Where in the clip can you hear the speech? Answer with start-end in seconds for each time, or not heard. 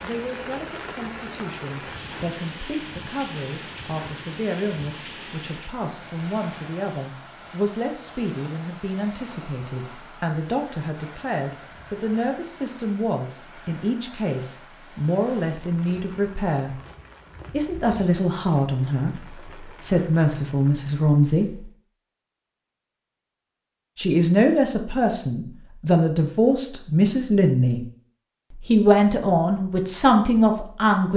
0.0-16.8, 17.5-21.7, 23.9-27.8, 28.6-31.1.